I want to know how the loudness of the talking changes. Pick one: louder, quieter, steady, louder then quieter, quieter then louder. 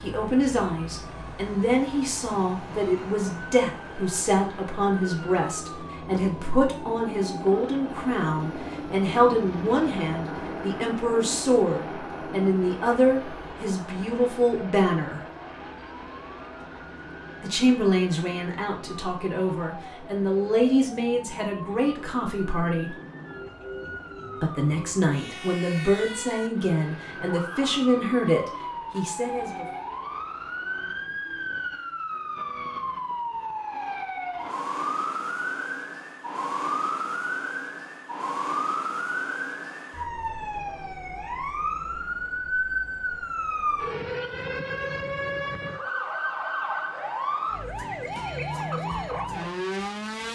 steady.